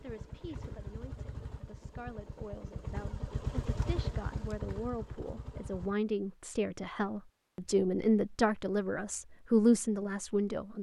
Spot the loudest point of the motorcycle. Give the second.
4 s.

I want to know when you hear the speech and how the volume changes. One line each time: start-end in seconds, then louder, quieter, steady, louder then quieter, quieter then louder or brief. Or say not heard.
0.0-10.7 louder.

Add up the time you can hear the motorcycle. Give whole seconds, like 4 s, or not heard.
6 s.